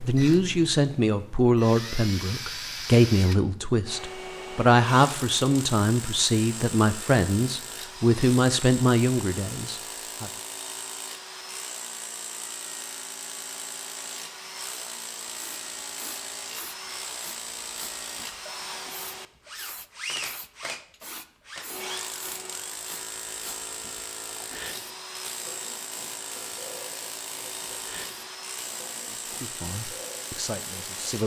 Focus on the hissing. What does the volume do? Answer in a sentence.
The volume of the hissing stays about the same.